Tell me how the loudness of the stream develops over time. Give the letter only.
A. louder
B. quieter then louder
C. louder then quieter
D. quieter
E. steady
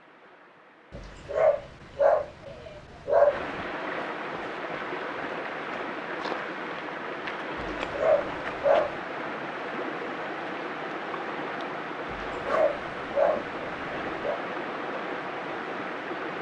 A.